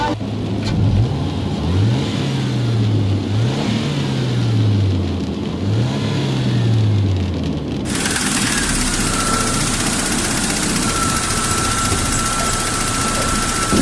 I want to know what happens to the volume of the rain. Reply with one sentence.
The volume of the rain stays about the same.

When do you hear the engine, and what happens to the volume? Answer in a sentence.
You can hear the engine from 0.0 to 13.7 s, at a steady volume.